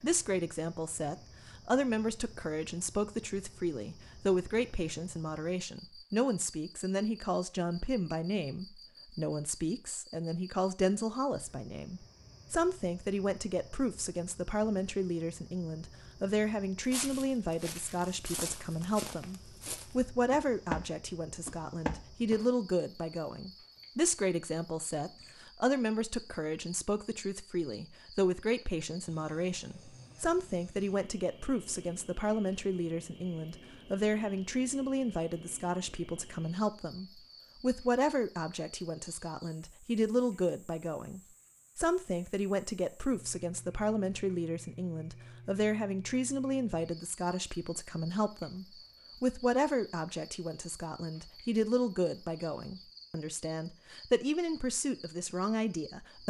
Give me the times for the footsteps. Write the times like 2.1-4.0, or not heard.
16.9-22.4.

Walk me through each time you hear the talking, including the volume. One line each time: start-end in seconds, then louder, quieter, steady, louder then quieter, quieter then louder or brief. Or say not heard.
0.0-56.2 steady.